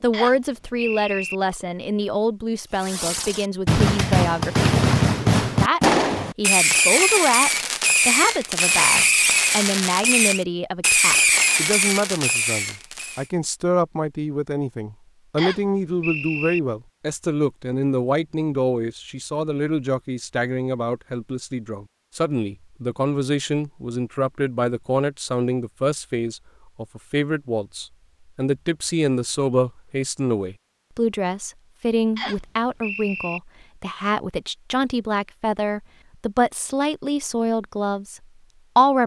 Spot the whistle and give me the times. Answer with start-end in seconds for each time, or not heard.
0.1-1.4, 15.3-16.6, 32.1-33.4.